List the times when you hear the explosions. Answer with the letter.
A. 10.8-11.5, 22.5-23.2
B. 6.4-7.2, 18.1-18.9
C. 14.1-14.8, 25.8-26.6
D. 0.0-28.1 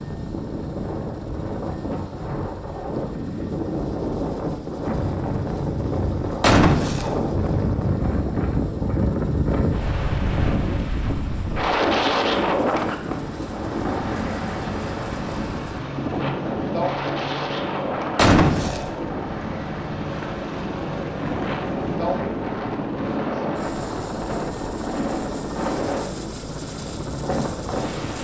B.